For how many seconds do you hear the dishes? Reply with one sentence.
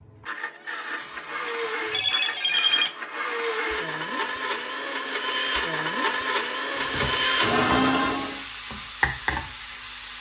You can't hear the dishes here.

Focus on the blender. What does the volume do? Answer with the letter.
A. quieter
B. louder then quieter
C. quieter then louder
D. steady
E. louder
E.